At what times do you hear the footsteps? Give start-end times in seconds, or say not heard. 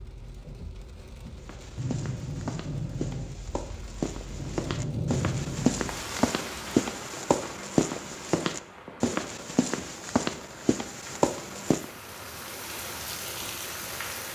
1.4-11.9.